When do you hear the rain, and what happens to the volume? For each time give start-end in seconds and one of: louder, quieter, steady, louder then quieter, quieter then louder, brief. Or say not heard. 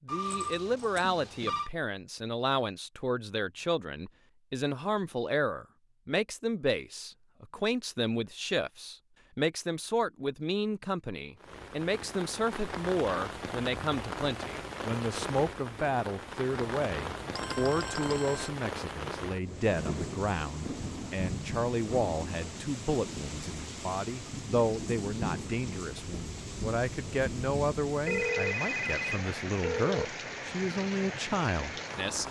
11.4-32.2 steady.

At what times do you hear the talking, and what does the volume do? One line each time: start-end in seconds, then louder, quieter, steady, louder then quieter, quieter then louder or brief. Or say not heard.
0.1-32.2 steady.